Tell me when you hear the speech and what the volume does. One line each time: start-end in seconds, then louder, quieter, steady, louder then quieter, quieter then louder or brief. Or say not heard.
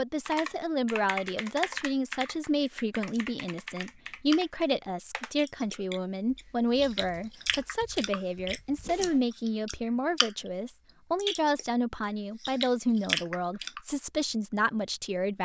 0.0-15.3 steady.